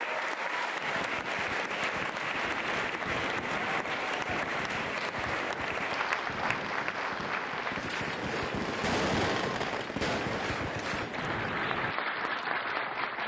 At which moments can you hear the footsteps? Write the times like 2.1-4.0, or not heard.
not heard.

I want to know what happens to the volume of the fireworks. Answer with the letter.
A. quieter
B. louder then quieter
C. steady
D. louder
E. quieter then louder
D.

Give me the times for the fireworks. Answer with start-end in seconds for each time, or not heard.
0.8-11.9.